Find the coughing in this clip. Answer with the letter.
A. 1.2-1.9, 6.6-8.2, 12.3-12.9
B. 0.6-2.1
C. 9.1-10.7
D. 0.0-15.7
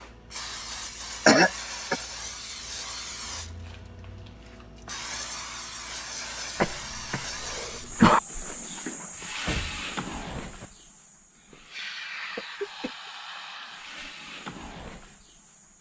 A.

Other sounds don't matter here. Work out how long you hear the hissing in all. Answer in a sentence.
You can hear the hissing for 16 seconds altogether.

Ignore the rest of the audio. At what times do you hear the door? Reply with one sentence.
The door can be heard from 9.1 to 10.7 s.